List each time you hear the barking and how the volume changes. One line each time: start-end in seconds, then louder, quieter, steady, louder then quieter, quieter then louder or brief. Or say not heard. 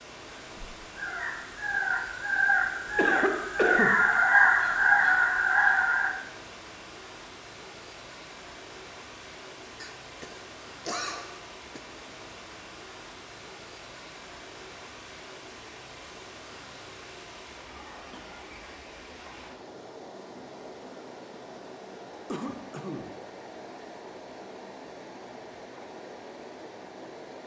not heard.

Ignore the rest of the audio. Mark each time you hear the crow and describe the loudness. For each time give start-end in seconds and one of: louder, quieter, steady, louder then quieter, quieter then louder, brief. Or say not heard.
0.3-6.1 louder.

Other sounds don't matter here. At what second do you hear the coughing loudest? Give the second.
4 s.